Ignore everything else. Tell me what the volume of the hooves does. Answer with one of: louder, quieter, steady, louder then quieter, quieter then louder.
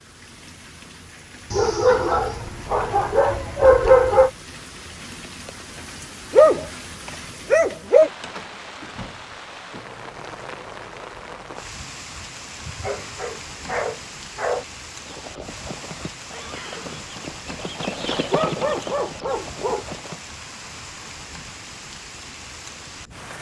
louder then quieter.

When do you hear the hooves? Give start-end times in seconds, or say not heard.
15.1-20.2.